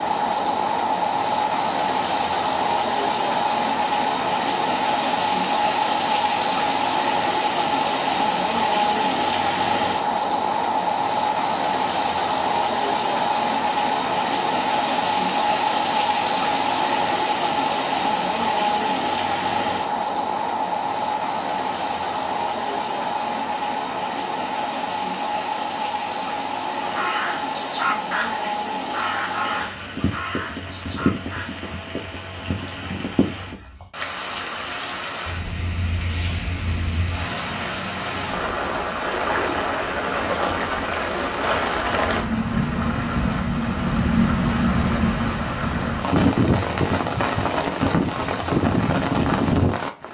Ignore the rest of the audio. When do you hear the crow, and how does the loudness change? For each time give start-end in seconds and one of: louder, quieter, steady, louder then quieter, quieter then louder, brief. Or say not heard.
26.8-31.8 quieter.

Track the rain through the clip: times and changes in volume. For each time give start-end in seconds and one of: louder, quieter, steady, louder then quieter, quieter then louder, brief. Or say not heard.
0.0-50.0 quieter then louder.